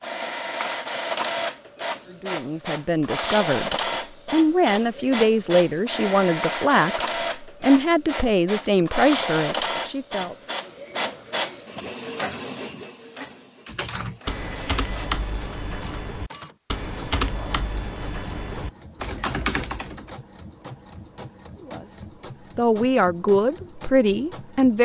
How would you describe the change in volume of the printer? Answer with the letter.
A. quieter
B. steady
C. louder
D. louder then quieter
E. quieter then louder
A.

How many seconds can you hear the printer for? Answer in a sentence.
The printer can be heard for 25 seconds in total.